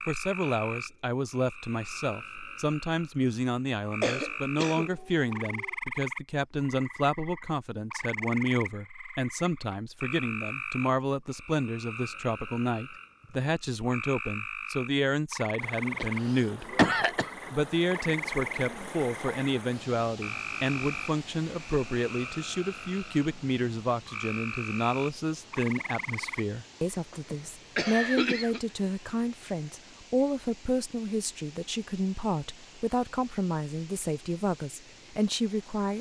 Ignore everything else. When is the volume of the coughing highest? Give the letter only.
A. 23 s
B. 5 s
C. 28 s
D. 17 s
D.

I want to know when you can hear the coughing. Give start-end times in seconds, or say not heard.
4.0-5.7, 16.0-17.3, 27.1-28.6.